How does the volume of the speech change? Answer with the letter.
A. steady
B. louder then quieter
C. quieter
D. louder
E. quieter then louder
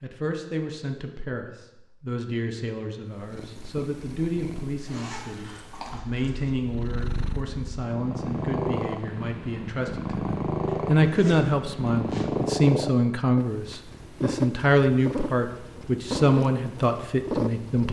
D.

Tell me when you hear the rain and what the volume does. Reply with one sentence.
You can't hear the rain here.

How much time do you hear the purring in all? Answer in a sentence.
You can hear the purring for 15 seconds altogether.